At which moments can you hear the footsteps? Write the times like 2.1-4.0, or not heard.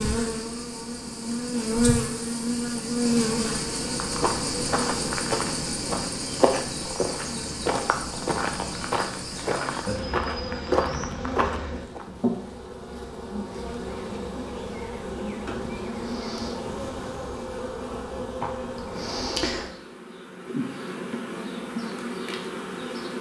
4.0-12.1.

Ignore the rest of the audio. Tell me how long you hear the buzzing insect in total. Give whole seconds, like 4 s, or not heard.
23 s.